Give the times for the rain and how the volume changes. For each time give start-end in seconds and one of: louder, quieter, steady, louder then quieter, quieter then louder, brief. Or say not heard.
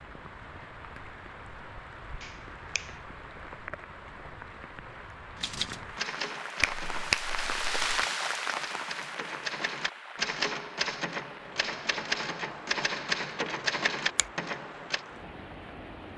0.0-16.1 louder then quieter.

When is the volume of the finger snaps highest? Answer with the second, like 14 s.
7 s.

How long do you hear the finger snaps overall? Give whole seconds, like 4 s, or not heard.
2 s.